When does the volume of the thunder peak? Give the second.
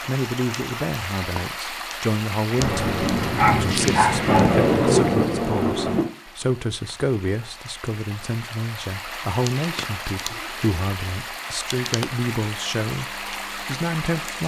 5 s.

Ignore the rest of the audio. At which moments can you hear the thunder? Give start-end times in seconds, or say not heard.
2.6-6.0.